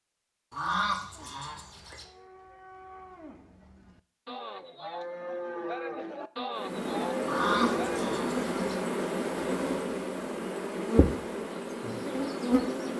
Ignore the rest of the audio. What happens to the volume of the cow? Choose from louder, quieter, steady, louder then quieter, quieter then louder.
louder.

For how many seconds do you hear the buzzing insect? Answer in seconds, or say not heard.
6 s.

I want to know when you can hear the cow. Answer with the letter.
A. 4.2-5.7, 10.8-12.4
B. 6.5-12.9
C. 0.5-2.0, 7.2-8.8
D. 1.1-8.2
D.